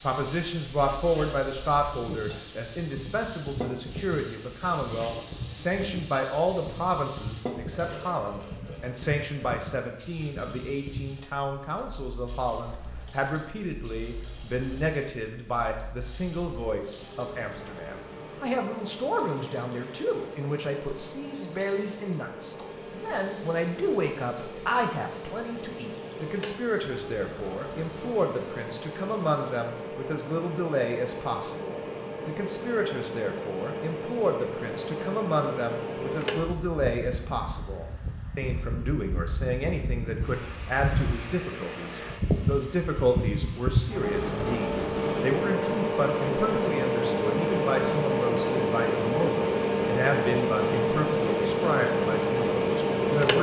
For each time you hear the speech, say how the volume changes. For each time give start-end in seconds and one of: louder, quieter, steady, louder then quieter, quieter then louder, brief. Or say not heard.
0.0-53.3 steady.